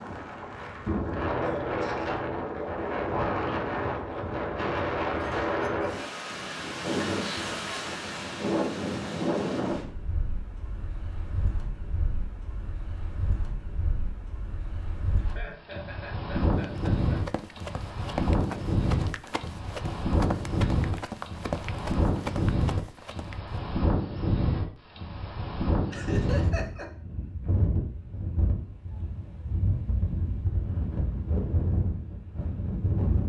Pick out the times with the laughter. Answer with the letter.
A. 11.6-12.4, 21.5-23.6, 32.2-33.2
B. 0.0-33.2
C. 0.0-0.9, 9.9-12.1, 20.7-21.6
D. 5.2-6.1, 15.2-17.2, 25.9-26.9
D.